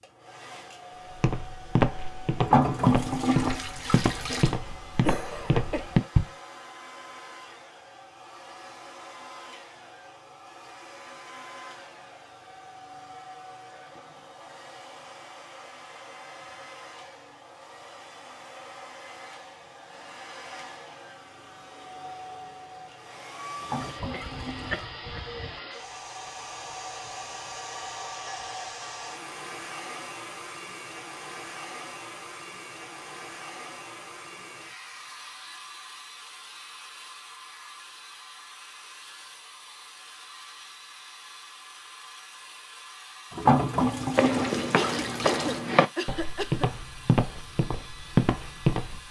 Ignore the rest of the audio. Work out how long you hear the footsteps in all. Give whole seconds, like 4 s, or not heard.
10 s.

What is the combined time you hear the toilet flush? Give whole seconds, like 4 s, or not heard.
6 s.